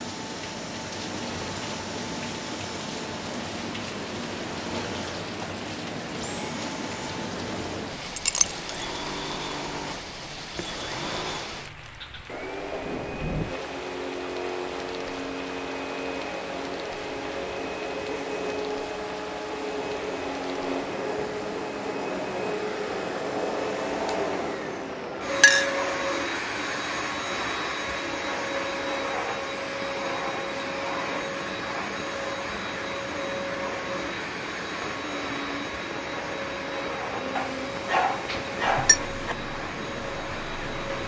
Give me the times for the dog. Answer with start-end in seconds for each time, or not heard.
37.4-39.4.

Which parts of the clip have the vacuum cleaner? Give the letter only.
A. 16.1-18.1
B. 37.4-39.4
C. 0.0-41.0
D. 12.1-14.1
C.